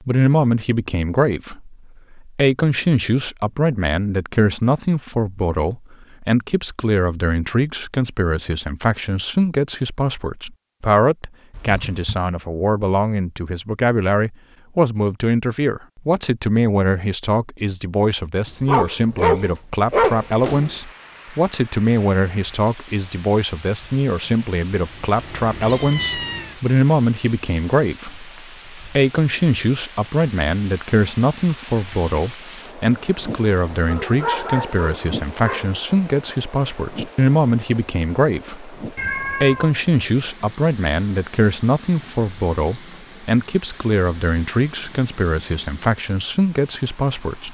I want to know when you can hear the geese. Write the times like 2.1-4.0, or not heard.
not heard.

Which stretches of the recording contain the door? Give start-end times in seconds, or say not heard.
not heard.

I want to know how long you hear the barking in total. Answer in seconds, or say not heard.
4 s.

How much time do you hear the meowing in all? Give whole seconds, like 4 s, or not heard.
4 s.